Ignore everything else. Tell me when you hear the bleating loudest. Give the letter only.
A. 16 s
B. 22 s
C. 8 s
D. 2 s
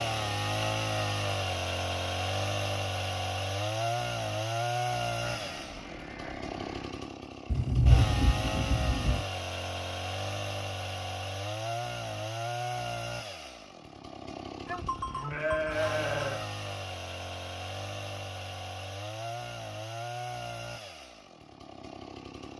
A.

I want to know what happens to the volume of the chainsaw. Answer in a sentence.
The loudness of the chainsaw goes down.